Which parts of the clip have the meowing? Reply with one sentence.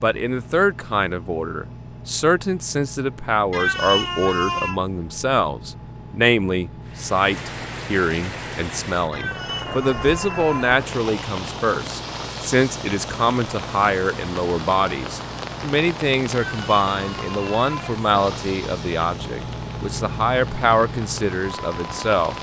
You can hear the meowing from 3.5 to 4.8 s, from 9.1 to 10.8 s and from 16.4 to 18.0 s.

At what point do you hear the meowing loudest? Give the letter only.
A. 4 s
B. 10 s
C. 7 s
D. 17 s
A.